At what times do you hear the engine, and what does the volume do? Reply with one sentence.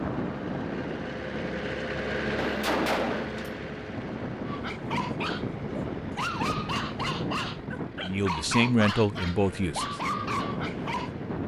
You can hear the engine from 0.0 to 11.4 s, getting quieter.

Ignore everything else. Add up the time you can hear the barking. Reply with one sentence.
You can hear the barking for 7 seconds altogether.